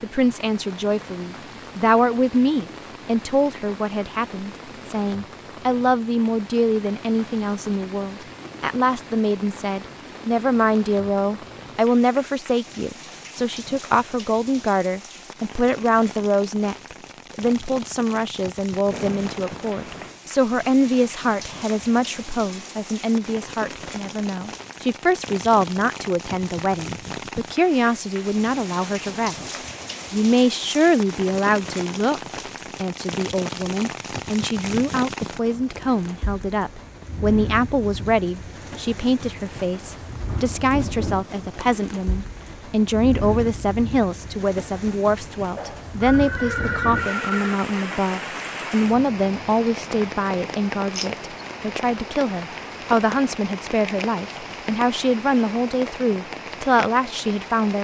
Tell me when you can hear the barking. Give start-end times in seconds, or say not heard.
not heard.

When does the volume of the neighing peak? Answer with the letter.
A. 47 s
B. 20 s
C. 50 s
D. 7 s
A.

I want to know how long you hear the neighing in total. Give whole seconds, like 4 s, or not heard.
3 s.